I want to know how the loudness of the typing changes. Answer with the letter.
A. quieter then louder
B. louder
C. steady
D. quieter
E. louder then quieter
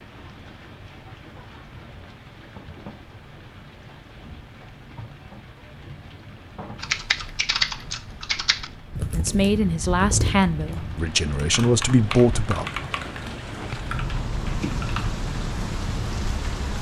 D.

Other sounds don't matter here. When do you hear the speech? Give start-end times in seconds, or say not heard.
9.2-12.7.